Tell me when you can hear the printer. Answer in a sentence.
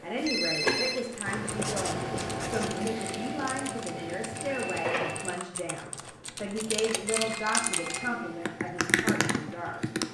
The printer can be heard from 0.0 to 5.4 s and from 7.5 to 10.0 s.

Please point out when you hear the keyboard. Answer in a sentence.
The keyboard can be heard from 1.1 to 10.0 s.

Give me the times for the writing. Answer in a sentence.
You can hear the writing from 1.2 to 2.9 s and from 5.5 to 7.4 s.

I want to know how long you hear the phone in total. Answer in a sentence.
The phone can be heard for 2 seconds in total.